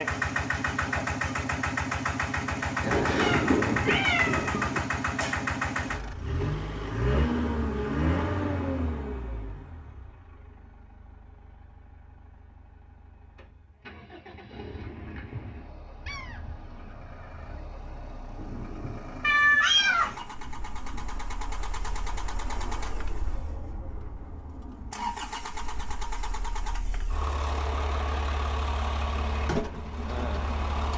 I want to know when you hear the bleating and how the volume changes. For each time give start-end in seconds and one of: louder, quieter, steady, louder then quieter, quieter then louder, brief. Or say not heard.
not heard.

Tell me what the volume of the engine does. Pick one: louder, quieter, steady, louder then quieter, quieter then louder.
quieter then louder.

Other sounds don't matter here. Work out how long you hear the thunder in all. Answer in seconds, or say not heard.
5 s.